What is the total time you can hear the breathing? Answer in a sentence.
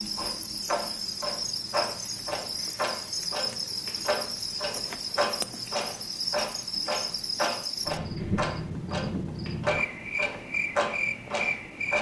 The breathing can't be heard in this clip.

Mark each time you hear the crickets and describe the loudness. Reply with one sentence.
You can hear the crickets from 0.0 to 11.9 s, at a steady volume.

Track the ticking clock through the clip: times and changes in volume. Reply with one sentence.
The ticking clock can be heard from 0.0 to 11.9 s, at a steady volume.